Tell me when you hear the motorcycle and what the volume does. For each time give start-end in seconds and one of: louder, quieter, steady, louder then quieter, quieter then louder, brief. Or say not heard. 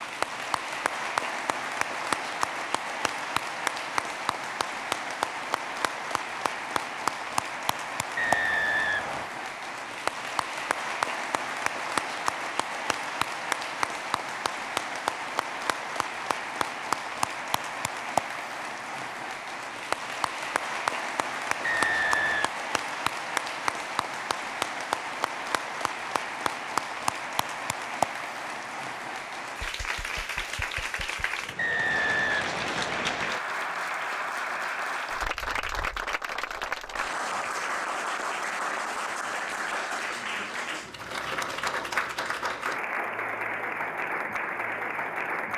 not heard.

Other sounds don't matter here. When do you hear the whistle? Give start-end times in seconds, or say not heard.
8.2-9.3, 21.6-22.6, 31.6-33.4.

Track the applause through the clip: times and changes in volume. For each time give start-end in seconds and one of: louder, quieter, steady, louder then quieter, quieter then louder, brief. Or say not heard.
0.0-45.5 steady.